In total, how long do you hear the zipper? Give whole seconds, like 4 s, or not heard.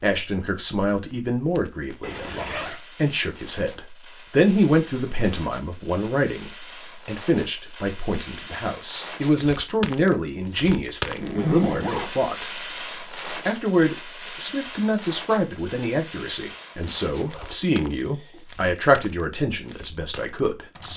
3 s.